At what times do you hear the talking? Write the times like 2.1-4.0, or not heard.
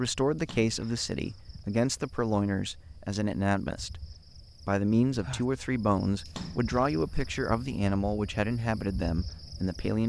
0.0-10.0.